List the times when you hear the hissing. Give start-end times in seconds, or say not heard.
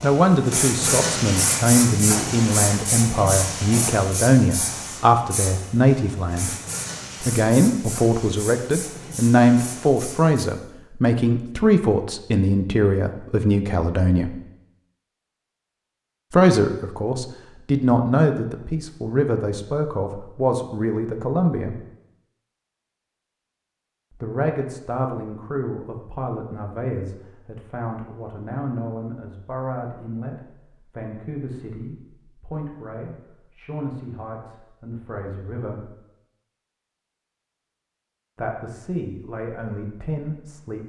0.0-10.4.